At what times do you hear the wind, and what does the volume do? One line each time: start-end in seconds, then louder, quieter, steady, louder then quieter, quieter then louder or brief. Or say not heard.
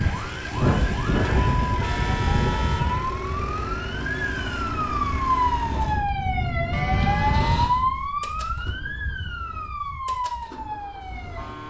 0.0-8.0 quieter then louder.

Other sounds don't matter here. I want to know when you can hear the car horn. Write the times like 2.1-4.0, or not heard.
1.2-3.1, 6.7-7.6.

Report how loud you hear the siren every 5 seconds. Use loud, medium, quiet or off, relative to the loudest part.
medium, loud, medium.